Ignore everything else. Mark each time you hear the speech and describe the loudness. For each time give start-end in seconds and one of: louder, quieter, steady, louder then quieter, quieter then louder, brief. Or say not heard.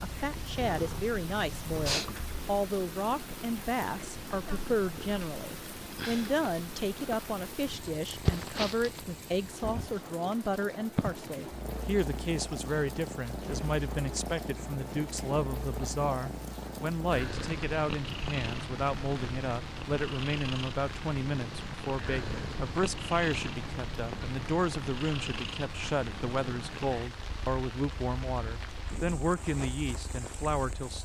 0.0-31.0 steady.